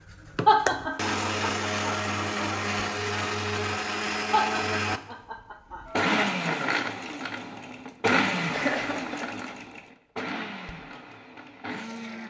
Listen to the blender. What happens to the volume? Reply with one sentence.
The loudness of the blender goes down.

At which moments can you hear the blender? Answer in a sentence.
The blender can be heard from 0.1 to 12.2 s.